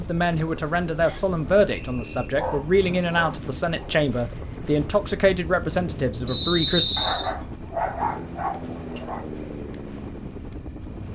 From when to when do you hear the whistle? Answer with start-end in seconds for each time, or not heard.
1.0-2.2, 6.2-7.3.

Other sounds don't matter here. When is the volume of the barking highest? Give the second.
8 s.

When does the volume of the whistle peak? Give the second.
7 s.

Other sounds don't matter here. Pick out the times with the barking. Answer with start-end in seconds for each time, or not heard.
2.4-4.0, 7.0-9.2.